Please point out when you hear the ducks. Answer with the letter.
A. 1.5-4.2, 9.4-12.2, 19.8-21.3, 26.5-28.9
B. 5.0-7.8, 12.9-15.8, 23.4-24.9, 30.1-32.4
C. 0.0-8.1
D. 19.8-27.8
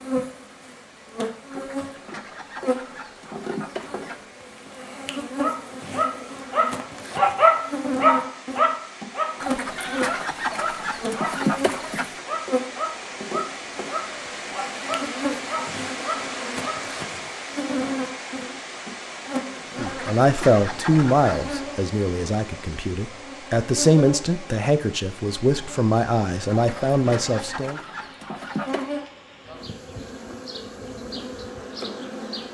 A.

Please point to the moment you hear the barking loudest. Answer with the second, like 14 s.
7 s.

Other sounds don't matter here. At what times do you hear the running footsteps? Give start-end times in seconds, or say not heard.
not heard.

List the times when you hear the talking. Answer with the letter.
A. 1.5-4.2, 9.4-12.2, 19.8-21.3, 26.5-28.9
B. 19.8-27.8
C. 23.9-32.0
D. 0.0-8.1
B.